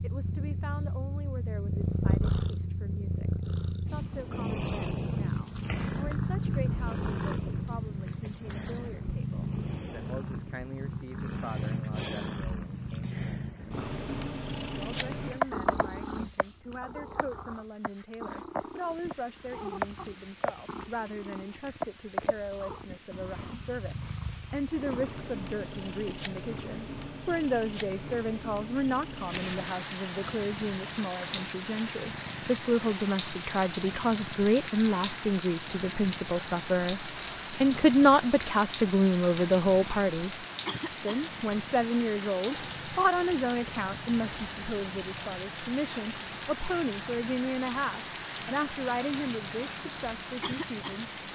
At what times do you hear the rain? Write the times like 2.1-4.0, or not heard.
18.6-51.3.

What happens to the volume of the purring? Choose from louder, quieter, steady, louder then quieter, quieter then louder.
quieter.